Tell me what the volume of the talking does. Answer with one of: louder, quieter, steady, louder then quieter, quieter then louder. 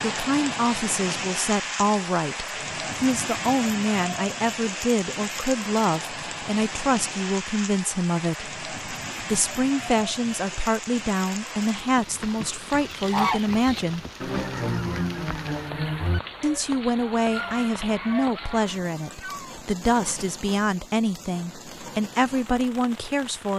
steady.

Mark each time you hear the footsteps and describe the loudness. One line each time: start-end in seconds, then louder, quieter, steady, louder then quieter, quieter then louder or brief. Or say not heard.
not heard.